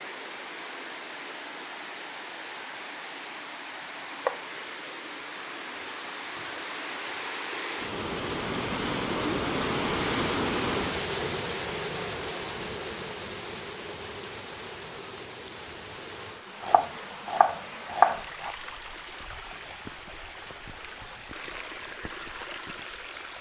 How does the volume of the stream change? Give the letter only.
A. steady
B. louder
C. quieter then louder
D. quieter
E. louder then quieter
E.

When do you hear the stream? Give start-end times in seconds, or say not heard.
0.0-23.3.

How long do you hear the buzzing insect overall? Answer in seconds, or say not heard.
not heard.